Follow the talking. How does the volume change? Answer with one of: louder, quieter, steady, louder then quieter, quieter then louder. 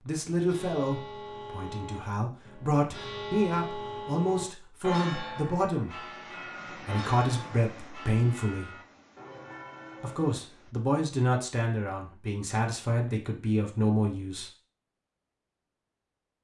steady.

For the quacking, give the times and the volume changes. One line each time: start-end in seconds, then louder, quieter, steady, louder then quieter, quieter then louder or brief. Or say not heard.
not heard.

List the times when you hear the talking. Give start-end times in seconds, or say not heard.
0.1-8.8, 10.0-14.5.